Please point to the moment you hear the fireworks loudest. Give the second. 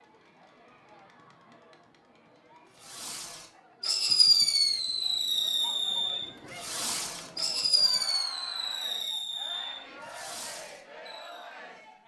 4 s.